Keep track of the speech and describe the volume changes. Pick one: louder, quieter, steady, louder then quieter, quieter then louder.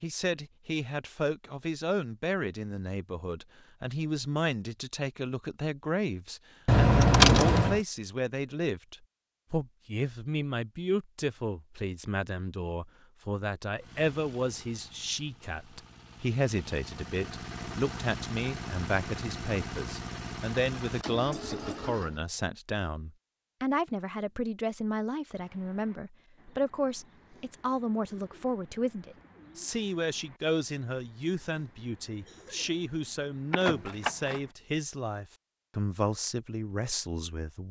steady.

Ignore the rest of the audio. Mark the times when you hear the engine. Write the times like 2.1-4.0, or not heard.
13.8-22.2.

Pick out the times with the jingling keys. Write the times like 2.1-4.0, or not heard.
6.7-7.8, 21.3-21.8, 33.5-34.4.